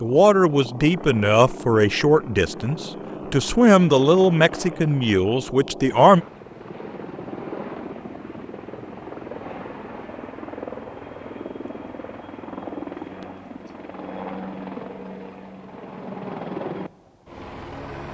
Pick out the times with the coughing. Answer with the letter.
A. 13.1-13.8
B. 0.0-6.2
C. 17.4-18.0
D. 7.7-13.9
A.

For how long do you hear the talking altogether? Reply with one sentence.
The talking can be heard for 6 seconds in total.